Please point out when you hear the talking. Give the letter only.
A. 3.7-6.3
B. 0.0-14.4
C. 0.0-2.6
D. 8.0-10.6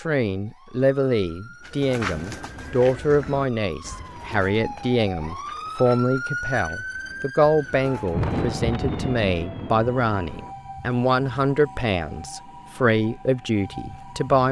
B.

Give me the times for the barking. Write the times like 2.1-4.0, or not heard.
not heard.